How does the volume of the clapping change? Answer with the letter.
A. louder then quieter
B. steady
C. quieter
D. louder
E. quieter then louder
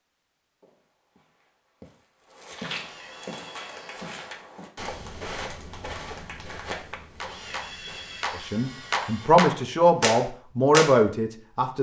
D.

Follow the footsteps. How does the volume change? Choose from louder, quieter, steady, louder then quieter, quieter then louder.
louder then quieter.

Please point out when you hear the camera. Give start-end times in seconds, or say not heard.
2.8-4.2, 7.2-9.3.